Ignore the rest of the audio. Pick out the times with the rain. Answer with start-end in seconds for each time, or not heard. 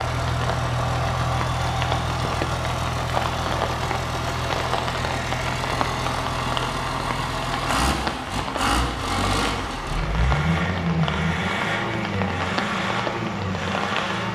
0.0-14.2.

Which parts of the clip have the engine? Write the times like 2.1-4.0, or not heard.
0.0-14.3.